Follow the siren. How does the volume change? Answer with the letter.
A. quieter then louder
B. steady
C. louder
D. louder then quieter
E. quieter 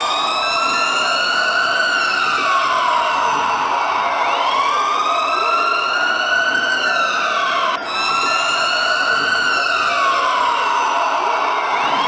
B.